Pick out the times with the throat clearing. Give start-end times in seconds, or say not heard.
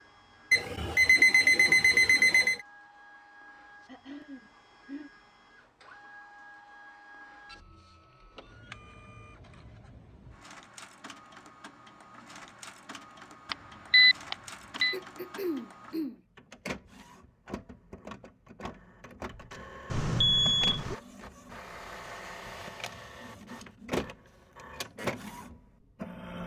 3.9-5.1, 14.9-16.2.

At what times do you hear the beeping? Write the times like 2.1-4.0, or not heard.
0.5-2.6, 13.5-14.9, 19.9-20.9.